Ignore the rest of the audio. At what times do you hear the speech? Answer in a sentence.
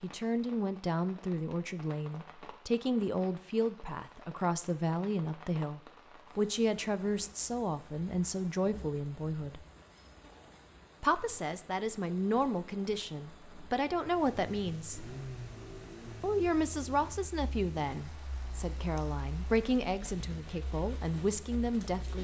The speech can be heard from 0.0 to 9.6 s, from 11.0 to 15.2 s and from 16.2 to 22.1 s.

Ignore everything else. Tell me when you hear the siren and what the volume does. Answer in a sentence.
You can't hear the siren here.